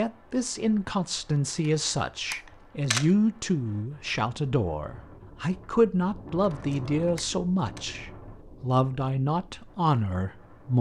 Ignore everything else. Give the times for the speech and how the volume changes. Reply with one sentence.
You can hear the speech from 0.0 to 10.7 s, at a steady volume.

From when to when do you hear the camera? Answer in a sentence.
You can hear the camera from 1.6 to 3.0 s and from 6.5 to 7.8 s.